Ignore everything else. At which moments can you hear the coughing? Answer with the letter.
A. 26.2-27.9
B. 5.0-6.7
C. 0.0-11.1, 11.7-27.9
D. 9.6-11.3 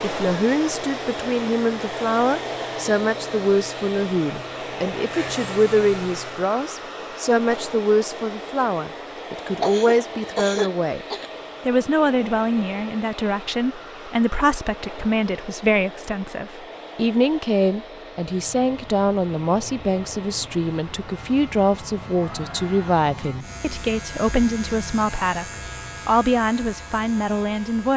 D.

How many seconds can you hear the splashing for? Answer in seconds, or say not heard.
not heard.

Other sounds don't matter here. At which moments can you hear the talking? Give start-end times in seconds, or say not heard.
0.0-11.1, 11.7-27.9.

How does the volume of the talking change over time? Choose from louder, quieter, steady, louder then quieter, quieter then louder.
steady.